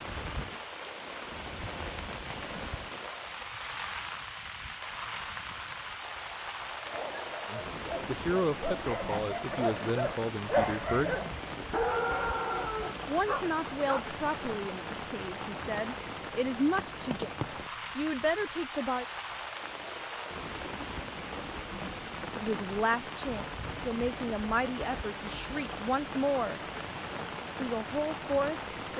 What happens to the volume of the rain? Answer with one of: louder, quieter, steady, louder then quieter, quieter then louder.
steady.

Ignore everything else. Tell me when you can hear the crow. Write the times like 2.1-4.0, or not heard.
not heard.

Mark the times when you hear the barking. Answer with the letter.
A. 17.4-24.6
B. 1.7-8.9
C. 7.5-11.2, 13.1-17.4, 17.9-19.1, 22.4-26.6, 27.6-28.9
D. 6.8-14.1
D.